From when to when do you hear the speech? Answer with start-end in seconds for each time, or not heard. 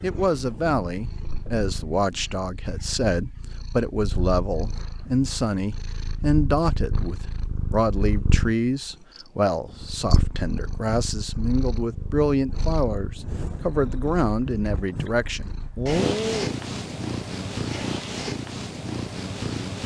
0.0-16.6.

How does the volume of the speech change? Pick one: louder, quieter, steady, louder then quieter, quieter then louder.
steady.